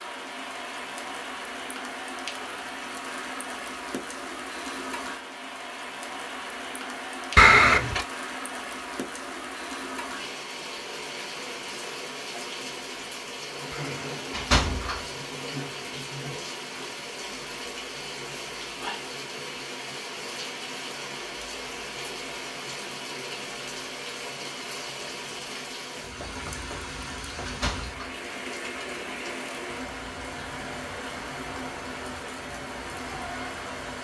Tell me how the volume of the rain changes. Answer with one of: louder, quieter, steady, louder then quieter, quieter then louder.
steady.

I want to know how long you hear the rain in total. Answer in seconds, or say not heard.
34 s.